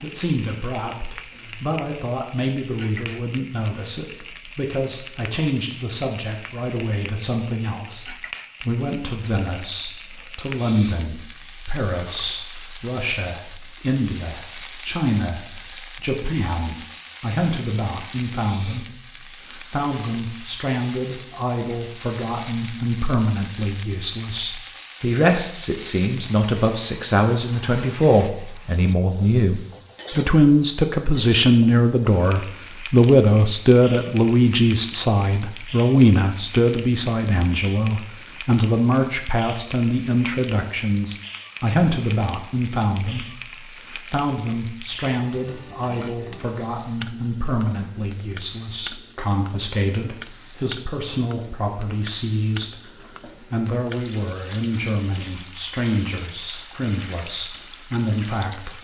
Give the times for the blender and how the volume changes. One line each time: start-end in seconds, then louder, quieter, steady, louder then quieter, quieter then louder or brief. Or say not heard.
not heard.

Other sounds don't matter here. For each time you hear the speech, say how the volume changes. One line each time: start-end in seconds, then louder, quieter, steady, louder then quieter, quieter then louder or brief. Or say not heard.
0.0-58.7 louder then quieter.